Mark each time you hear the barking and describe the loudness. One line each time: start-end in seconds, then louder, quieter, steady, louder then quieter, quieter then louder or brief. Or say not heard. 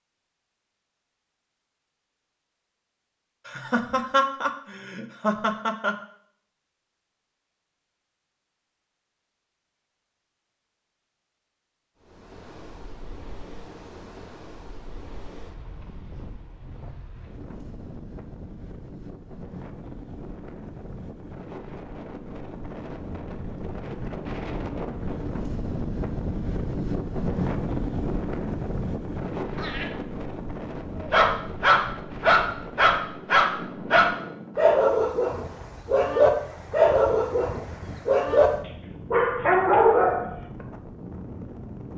31.0-38.5 steady
39.1-40.4 brief.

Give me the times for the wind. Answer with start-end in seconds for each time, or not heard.
12.0-41.9.